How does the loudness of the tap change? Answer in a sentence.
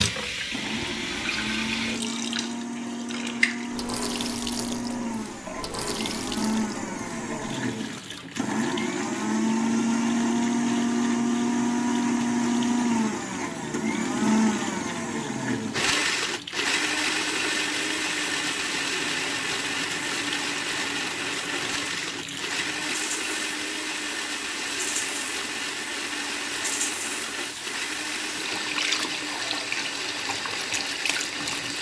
The volume of the tap goes down, then up.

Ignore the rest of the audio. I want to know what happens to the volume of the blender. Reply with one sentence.
The volume of the blender goes up, then down.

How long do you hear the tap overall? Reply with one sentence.
You can hear the tap for 32 seconds altogether.